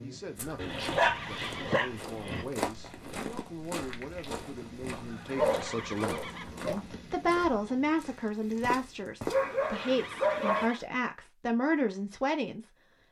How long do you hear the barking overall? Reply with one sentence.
The barking can be heard for 5 seconds in total.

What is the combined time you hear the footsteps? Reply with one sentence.
You can hear the footsteps for 9 seconds altogether.